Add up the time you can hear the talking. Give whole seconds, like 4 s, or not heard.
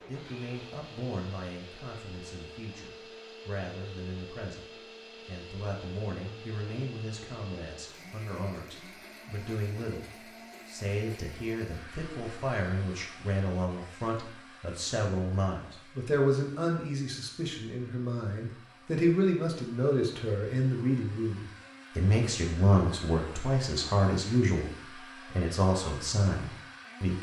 27 s.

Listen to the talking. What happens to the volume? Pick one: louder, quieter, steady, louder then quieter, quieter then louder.
louder.